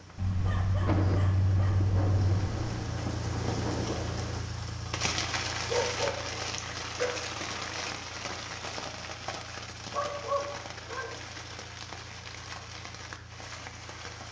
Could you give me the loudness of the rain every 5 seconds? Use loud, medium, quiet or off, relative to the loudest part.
loud, loud, medium.